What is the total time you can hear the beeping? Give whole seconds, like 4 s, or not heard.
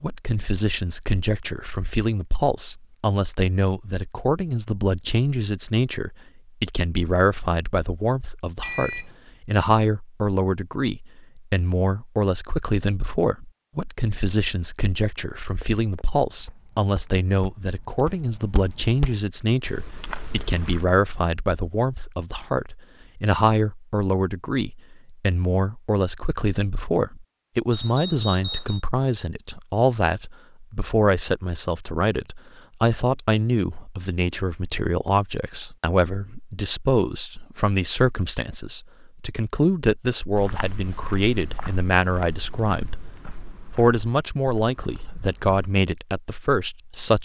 2 s.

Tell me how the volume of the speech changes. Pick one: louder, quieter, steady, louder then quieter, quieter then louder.
steady.